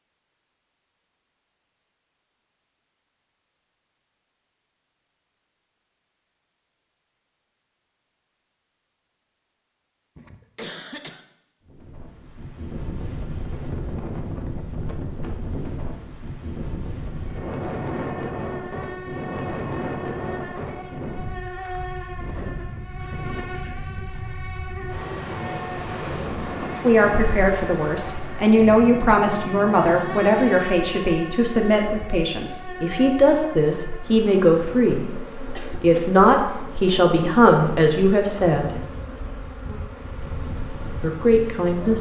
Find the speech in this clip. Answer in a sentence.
The speech can be heard from 26.8 to 38.8 s and from 41.0 to 41.9 s.